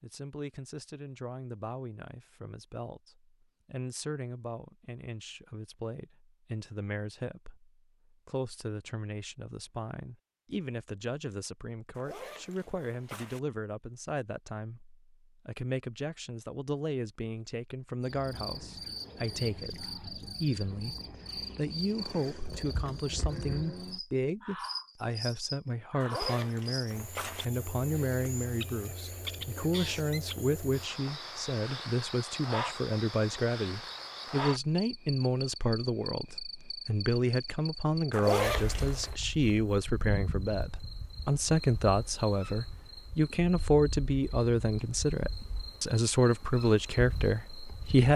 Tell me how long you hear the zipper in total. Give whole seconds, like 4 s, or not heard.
4 s.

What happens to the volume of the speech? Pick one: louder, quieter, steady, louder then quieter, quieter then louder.
louder.